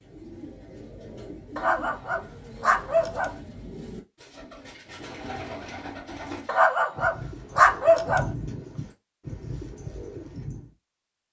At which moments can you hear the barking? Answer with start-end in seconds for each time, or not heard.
1.6-3.3, 6.5-8.2.